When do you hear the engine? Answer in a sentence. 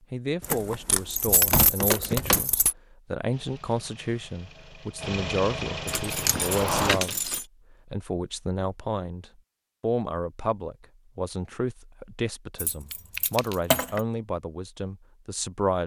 The engine can be heard from 3.3 to 7.0 s.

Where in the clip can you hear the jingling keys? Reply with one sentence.
You can hear the jingling keys from 0.4 to 2.8 s, from 5.8 to 7.5 s and from 12.6 to 14.0 s.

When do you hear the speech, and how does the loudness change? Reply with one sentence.
You can hear the speech from 0.1 to 15.8 s, at a steady volume.